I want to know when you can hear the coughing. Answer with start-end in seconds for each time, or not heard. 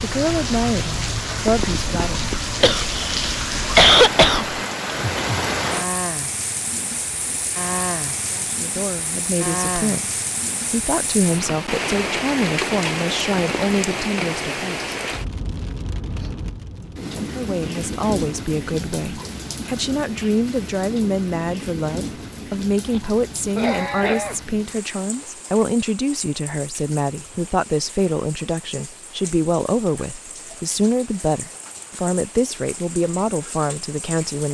2.6-4.6, 22.9-24.4.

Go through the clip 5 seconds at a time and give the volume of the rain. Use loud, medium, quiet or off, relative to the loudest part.
loud, loud, loud, medium, medium, quiet, quiet.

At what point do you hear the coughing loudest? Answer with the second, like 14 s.
4 s.